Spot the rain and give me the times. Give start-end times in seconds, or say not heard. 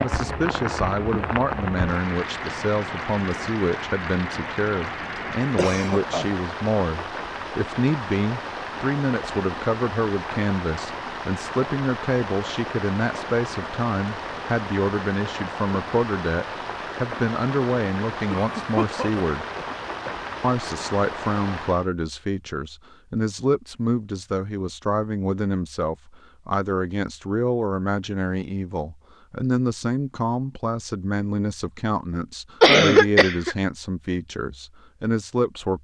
0.0-21.9.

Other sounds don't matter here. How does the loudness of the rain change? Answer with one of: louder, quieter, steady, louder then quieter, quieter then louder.
steady.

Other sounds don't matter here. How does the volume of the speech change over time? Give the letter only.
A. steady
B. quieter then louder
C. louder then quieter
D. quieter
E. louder
A.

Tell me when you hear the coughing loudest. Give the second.
33 s.